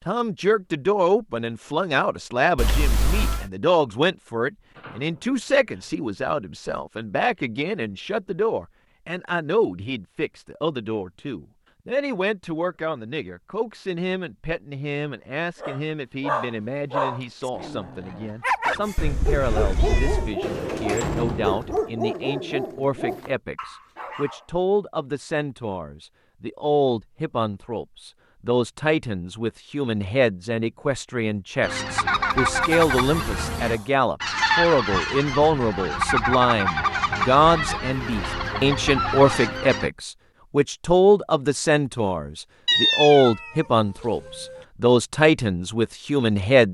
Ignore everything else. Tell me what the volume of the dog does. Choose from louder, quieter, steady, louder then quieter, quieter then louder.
quieter.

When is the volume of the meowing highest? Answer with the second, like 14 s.
43 s.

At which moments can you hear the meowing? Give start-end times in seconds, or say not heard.
2.5-3.5, 18.9-20.4, 42.6-44.6.